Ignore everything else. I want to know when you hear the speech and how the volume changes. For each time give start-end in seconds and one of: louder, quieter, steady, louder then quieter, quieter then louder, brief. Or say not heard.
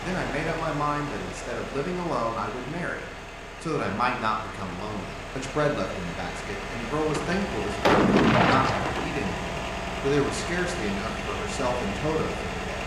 0.0-12.8 steady.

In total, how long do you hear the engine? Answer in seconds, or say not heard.
13 s.